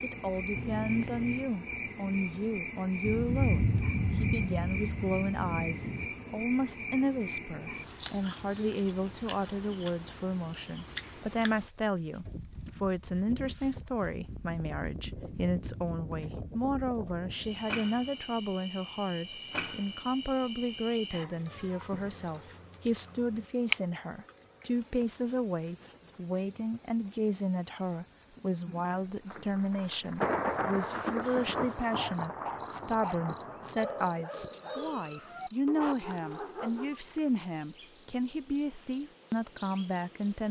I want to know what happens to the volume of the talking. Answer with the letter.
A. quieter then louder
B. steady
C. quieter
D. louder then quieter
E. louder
B.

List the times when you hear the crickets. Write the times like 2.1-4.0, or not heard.
0.0-40.4.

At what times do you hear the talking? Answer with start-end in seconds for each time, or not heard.
0.0-40.4.